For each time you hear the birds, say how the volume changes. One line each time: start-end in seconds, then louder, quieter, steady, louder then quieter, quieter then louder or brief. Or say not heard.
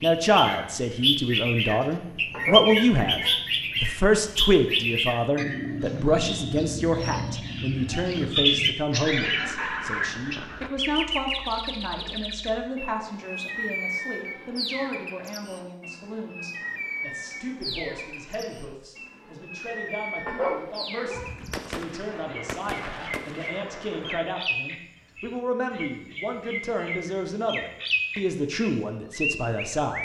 0.0-29.9 quieter then louder.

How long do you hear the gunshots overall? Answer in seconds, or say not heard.
3 s.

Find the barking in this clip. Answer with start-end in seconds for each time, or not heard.
2.3-3.4, 20.2-21.3.